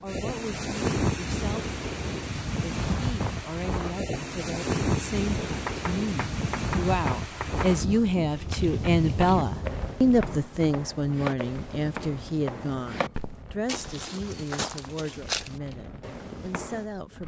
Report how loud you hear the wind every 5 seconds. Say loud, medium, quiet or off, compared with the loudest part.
loud, loud, quiet, quiet.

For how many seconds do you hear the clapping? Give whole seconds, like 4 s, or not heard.
2 s.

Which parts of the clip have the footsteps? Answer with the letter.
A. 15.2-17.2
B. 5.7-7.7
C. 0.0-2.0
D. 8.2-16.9
D.